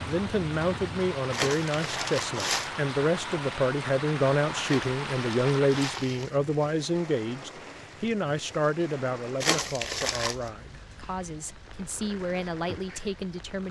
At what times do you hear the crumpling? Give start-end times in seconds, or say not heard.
1.3-2.7, 4.6-6.3, 9.4-10.3.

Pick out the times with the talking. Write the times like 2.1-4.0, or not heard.
0.0-13.6.